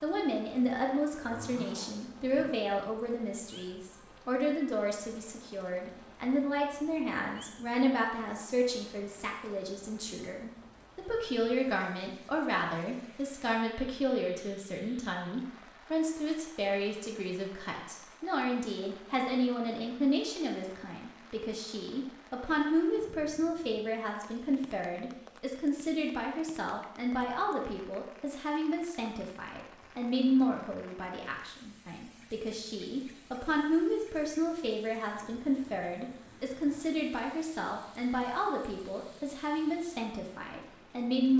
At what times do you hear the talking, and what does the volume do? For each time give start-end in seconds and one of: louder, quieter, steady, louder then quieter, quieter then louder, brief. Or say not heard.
0.0-41.3 steady.